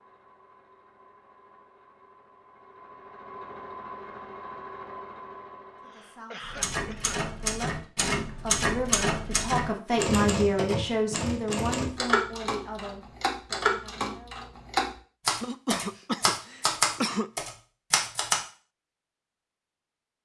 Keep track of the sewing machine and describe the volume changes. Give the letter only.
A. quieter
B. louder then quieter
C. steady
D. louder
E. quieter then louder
D.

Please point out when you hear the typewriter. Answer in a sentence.
You can hear the typewriter from 6.4 to 18.4 s.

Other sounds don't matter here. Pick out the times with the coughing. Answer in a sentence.
The coughing can be heard from 5.8 to 7.2 s and from 15.4 to 17.3 s.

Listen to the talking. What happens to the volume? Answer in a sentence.
The loudness of the talking goes up, then down.